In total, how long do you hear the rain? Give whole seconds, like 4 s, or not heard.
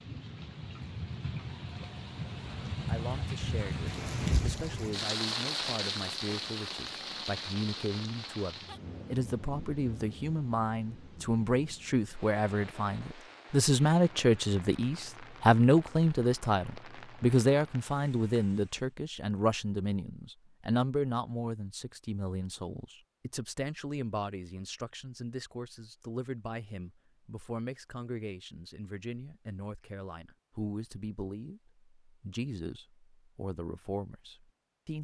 19 s.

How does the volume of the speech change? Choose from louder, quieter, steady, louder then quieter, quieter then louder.
louder then quieter.